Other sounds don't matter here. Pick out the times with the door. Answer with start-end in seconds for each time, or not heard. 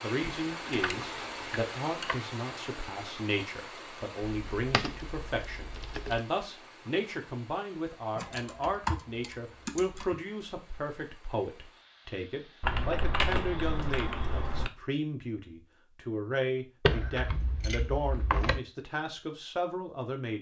not heard.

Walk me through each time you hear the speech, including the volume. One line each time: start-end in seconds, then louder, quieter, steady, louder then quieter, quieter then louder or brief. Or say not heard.
0.0-20.3 steady.